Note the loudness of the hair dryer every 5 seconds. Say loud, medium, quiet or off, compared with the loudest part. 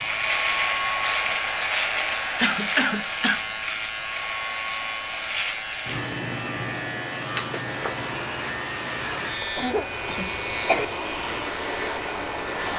loud, medium, loud.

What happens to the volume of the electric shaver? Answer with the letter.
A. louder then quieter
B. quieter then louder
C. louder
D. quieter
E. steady
D.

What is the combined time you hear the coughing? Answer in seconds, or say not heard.
2 s.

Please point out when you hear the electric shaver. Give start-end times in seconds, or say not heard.
0.0-12.7.